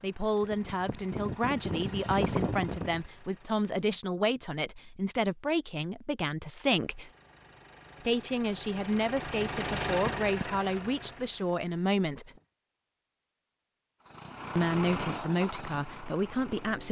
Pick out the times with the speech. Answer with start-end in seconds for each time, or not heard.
0.0-7.1, 8.1-12.3, 14.6-16.8.